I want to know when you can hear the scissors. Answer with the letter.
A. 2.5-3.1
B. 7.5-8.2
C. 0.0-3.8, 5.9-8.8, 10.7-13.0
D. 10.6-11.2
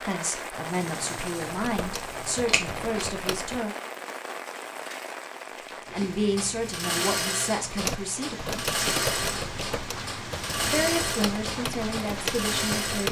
A.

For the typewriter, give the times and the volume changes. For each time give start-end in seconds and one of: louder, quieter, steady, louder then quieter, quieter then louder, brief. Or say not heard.
1.4-3.6 brief
7.6-13.0 quieter then louder.